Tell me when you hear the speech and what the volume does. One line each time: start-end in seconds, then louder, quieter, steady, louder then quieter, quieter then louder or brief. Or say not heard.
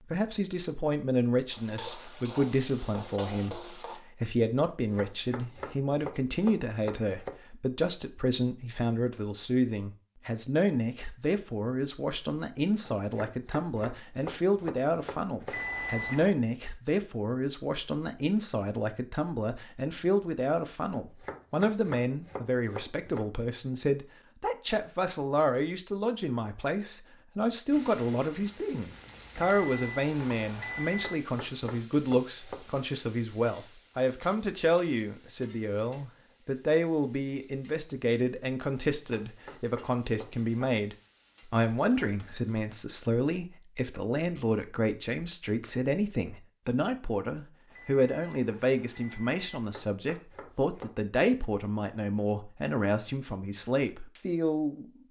0.1-54.9 steady.